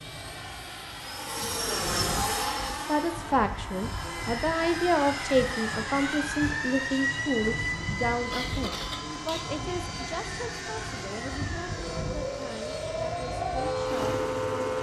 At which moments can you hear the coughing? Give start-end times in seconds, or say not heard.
8.1-9.4.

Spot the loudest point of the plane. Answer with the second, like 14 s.
2 s.